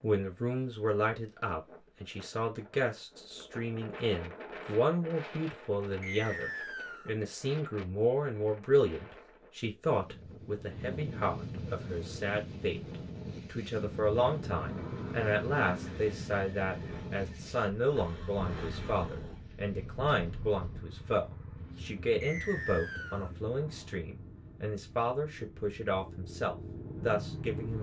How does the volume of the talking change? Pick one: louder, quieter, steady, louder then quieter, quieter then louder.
steady.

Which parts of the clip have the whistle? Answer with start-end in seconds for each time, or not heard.
6.0-7.2, 22.2-23.3.